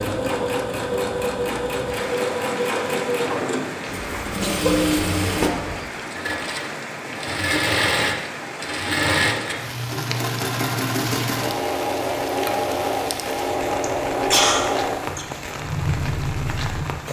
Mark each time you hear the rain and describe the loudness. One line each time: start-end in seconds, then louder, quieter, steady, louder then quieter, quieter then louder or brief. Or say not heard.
0.0-17.0 steady.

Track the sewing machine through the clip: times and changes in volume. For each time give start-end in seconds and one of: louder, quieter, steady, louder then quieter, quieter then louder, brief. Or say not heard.
0.0-17.0 steady.